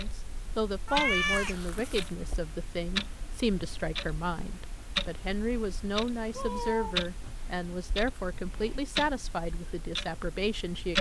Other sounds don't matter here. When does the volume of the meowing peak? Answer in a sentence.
The volume of the meowing peaks at 1 second.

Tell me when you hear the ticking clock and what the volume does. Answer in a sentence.
You can hear the ticking clock from 0.0 to 10.9 s, at a steady volume.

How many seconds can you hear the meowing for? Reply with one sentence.
The meowing can be heard for 2 seconds in total.